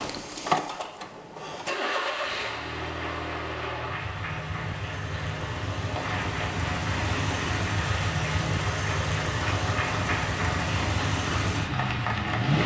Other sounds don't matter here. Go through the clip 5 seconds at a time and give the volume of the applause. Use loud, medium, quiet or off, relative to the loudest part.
medium, loud, loud.